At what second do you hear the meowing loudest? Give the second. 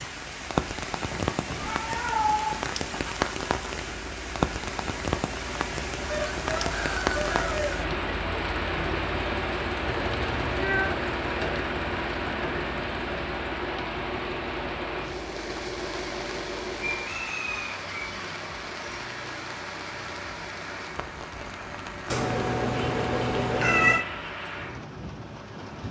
24 s.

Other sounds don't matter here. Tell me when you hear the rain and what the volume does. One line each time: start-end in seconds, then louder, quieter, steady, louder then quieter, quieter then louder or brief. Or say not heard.
0.0-25.8 quieter.